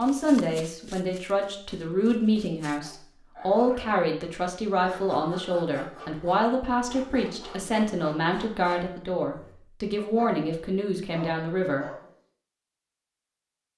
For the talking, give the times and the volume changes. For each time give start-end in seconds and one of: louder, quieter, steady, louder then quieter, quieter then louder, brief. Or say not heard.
0.0-11.8 steady.